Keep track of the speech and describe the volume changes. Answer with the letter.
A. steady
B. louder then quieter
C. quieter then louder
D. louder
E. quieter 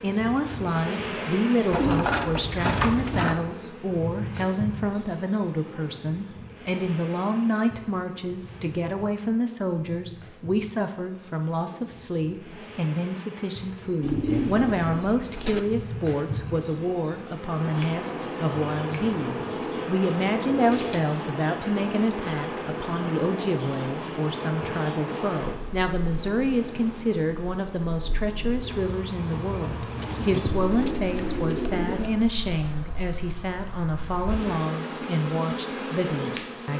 A.